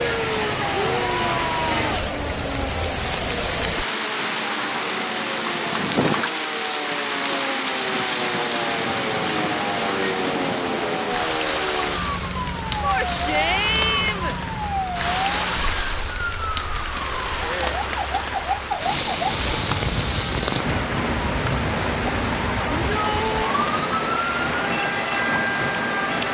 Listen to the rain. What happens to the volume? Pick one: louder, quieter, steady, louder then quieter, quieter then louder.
steady.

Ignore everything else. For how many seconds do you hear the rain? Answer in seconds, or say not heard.
26 s.